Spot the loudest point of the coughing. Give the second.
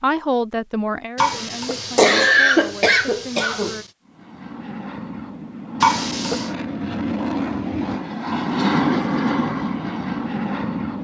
2 s.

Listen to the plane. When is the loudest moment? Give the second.
9 s.